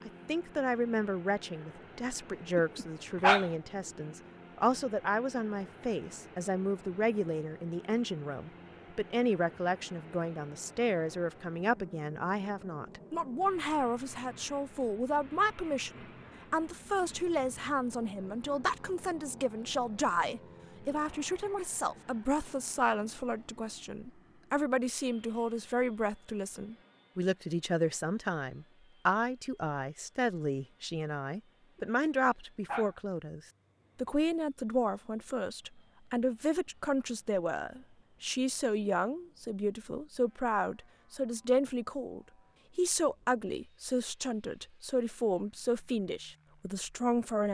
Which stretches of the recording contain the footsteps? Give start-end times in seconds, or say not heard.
not heard.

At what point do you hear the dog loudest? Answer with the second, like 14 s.
3 s.